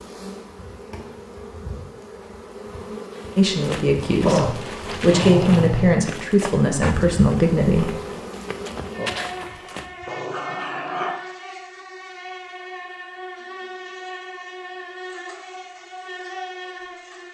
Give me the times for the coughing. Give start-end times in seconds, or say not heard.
not heard.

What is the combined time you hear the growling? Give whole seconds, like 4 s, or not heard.
3 s.